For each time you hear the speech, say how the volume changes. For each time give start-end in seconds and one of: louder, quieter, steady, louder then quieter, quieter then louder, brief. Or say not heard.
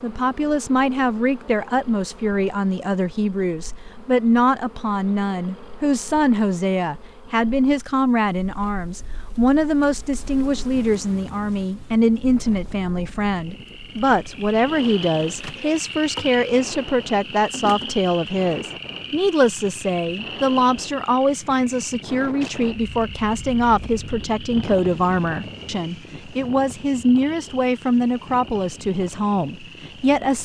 0.0-30.4 steady.